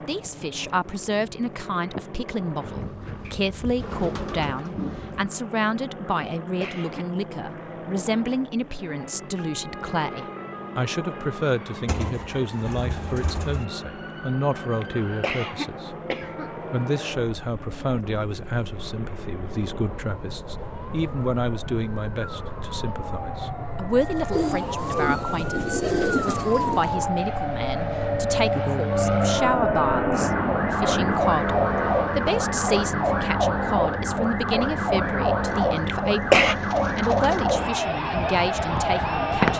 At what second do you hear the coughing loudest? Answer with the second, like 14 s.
36 s.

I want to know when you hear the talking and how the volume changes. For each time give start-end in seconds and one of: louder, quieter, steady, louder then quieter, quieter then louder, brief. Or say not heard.
0.1-39.5 steady.